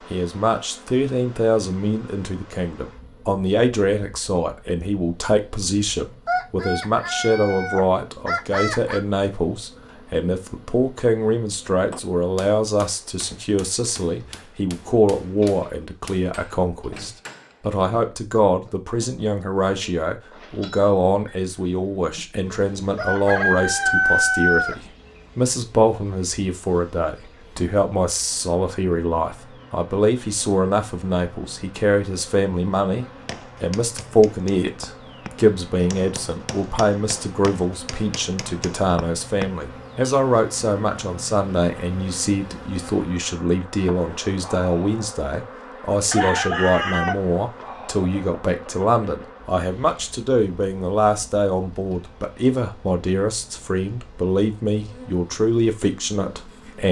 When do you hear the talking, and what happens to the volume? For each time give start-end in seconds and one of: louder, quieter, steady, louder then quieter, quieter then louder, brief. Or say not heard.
0.1-56.8 steady.